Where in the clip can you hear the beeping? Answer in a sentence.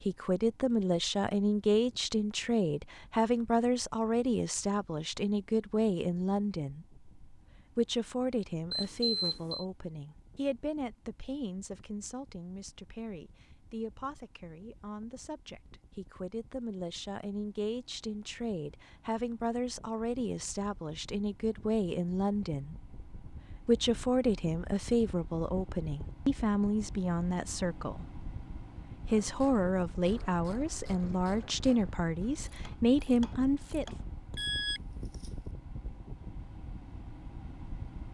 The beeping can be heard from 8.7 to 9.7 s and from 34.4 to 35.3 s.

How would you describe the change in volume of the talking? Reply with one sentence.
The loudness of the talking goes down, then up.